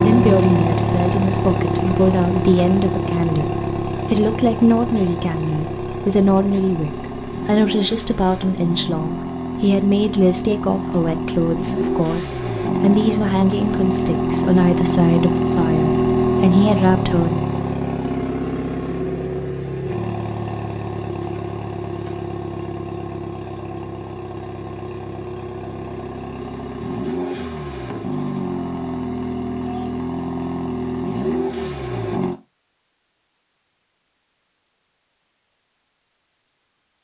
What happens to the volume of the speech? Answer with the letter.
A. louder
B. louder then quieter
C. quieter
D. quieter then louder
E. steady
E.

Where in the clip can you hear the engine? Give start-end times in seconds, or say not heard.
0.0-32.4.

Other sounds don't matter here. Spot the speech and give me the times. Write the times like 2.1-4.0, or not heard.
0.0-17.4.